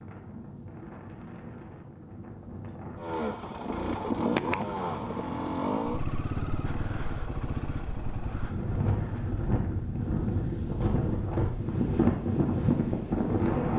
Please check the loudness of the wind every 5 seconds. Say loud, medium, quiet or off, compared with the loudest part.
quiet, medium, loud.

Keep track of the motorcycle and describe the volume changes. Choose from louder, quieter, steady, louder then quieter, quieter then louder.
quieter.